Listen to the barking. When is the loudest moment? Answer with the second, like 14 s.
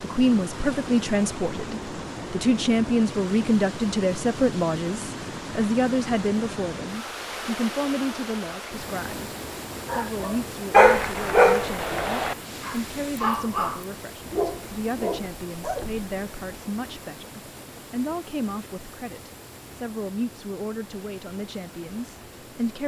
11 s.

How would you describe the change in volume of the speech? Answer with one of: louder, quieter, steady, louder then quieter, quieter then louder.
quieter.